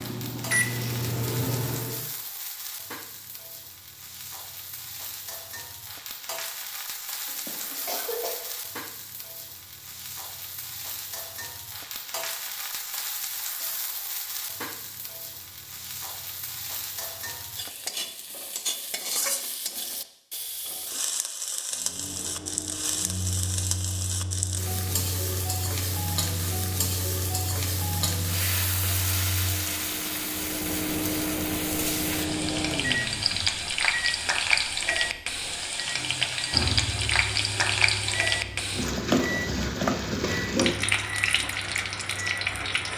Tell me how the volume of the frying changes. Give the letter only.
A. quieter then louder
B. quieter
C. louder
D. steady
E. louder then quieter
C.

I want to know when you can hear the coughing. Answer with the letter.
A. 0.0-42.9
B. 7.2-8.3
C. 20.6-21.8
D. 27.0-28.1
B.